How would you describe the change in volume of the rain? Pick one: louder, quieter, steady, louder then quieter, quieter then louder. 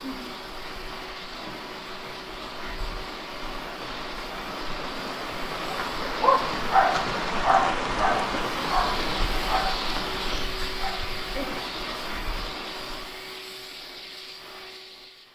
louder then quieter.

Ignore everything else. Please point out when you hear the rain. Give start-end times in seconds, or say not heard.
0.0-13.2.